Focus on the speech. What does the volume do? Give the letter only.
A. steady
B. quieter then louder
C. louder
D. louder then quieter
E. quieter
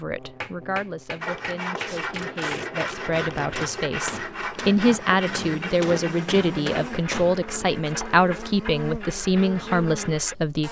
C.